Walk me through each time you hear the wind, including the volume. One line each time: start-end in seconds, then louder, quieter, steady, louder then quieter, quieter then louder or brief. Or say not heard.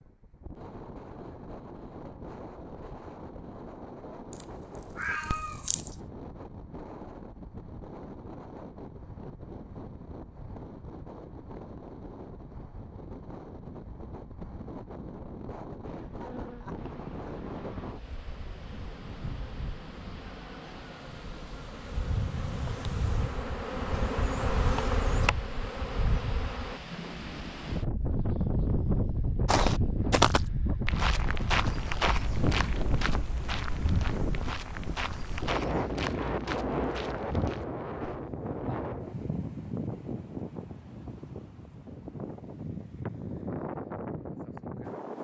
0.0-45.1 louder.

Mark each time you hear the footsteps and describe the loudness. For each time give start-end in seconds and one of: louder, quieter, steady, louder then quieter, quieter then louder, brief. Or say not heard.
29.4-38.2 quieter.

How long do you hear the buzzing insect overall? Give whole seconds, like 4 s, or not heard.
11 s.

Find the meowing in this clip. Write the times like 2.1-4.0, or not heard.
4.3-6.0.